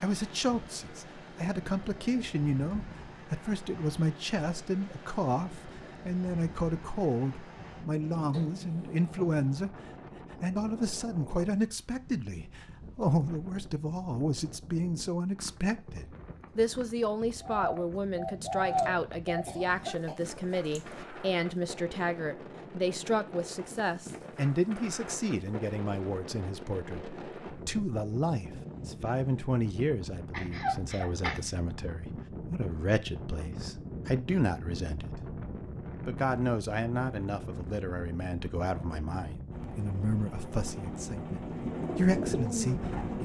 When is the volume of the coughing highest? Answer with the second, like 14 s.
31 s.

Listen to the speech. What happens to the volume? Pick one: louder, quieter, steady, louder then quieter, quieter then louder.
steady.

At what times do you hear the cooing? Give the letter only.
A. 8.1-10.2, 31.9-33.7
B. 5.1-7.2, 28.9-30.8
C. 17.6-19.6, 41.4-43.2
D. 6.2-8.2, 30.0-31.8
C.